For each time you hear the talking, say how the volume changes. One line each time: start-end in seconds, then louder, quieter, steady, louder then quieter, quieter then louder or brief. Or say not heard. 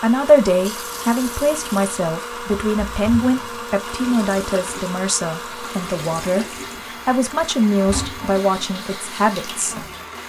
0.0-9.8 steady.